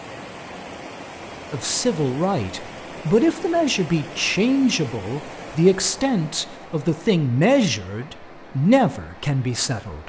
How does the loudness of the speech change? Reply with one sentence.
The loudness of the speech stays about the same.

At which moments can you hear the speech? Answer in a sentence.
The speech can be heard from 1.5 to 10.0 s.